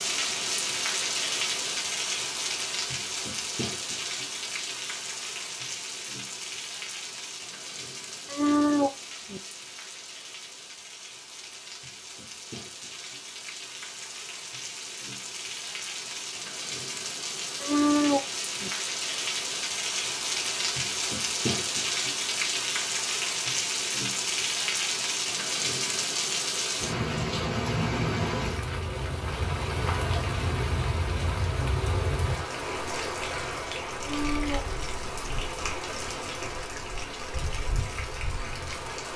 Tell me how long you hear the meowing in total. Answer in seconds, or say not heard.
3 s.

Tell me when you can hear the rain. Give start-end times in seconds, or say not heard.
0.0-39.1.